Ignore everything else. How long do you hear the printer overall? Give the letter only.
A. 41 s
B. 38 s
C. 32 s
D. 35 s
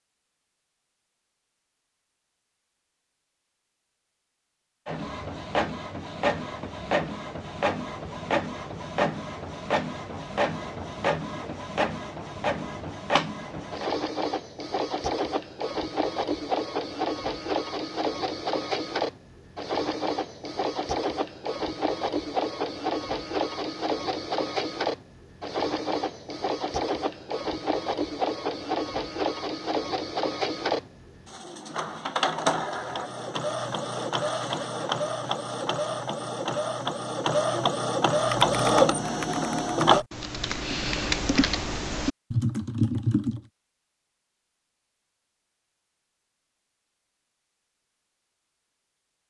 D.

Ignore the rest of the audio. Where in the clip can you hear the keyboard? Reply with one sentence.
You can hear the keyboard from 38.1 to 43.4 s.